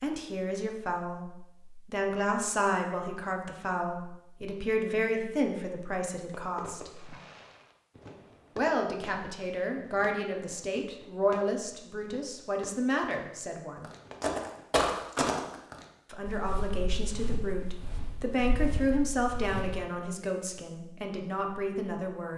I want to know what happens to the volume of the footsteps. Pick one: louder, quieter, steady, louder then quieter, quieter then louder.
quieter.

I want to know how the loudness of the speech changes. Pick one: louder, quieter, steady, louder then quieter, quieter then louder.
steady.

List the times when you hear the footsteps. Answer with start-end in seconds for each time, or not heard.
13.8-19.9.